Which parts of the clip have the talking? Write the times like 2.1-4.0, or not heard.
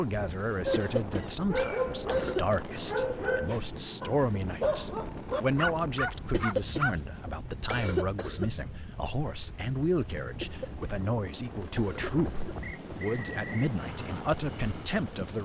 0.0-15.4.